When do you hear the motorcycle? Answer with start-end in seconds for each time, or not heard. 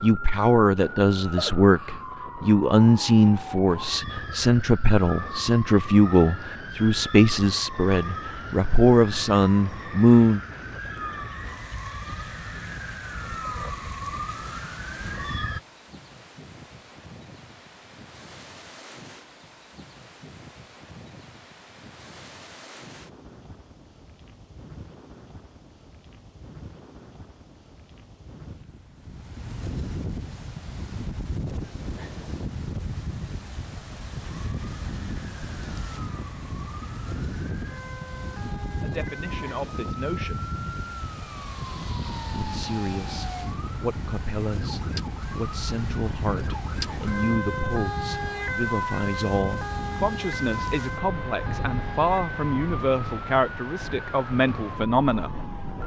not heard.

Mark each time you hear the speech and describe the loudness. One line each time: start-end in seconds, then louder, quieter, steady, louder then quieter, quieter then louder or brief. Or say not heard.
0.0-10.4 steady
38.8-40.5 brief
42.3-55.3 louder.